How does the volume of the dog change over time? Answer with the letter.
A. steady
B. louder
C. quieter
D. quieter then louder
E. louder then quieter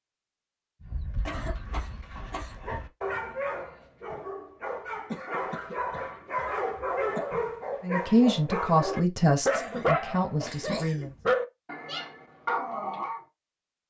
B.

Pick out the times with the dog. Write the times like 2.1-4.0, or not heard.
0.8-13.2.